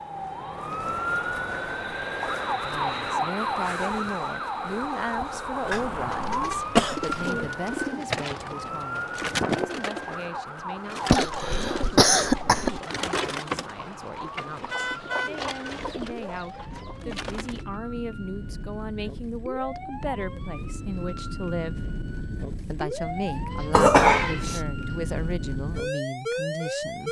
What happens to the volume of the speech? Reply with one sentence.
The loudness of the speech goes down, then up.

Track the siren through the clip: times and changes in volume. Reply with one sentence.
You can hear the siren from 0.0 to 27.0 s, getting quieter then louder.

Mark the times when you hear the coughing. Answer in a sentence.
The coughing can be heard from 5.7 to 7.3 s, from 11.1 to 12.8 s and from 23.7 to 24.6 s.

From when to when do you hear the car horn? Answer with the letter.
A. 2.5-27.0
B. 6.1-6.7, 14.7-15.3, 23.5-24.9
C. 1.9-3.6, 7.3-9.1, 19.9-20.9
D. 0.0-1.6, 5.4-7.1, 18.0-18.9
B.